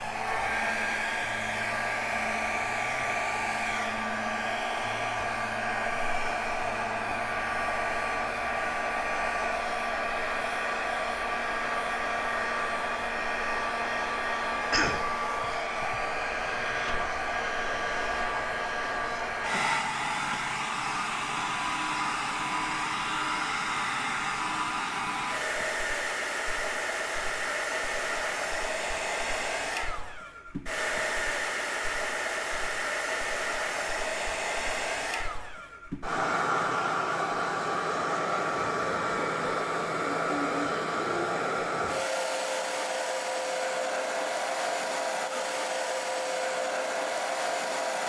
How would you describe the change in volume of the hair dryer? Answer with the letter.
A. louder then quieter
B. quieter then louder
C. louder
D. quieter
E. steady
E.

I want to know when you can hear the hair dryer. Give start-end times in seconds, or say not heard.
0.0-48.0.